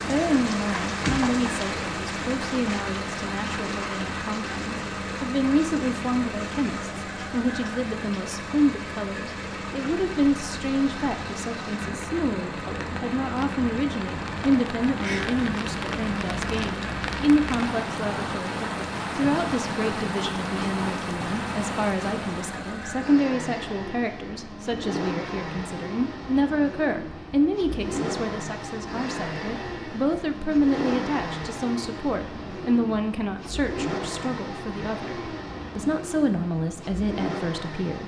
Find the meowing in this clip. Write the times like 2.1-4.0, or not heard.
not heard.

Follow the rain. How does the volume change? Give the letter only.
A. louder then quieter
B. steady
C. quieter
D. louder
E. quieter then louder
E.